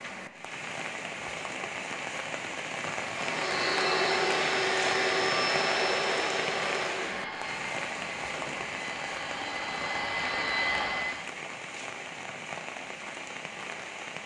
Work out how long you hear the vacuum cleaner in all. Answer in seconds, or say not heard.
8 s.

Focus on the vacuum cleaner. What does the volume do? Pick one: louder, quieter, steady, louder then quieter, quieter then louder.
quieter then louder.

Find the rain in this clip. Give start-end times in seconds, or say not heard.
0.0-14.2.